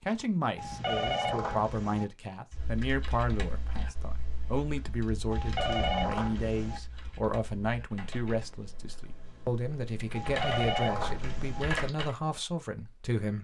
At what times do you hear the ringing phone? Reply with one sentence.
The ringing phone can be heard from 0.6 to 2.0 s, from 5.3 to 6.8 s and from 10.2 to 11.7 s.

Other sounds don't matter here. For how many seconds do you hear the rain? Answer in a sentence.
You can't hear the rain here.